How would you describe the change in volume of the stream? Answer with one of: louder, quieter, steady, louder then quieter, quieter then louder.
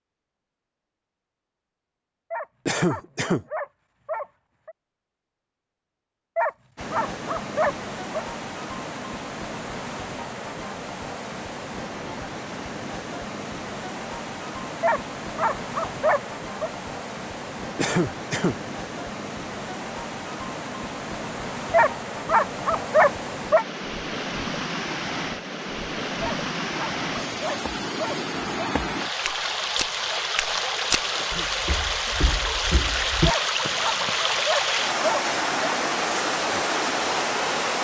louder.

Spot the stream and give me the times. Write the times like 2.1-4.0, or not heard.
6.8-37.7.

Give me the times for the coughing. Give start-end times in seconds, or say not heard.
2.6-3.5, 17.8-18.6, 31.1-31.6.